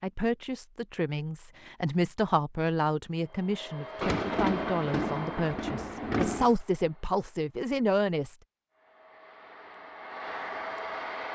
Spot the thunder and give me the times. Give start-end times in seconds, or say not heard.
4.0-6.5.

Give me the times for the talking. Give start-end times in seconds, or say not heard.
0.0-8.3.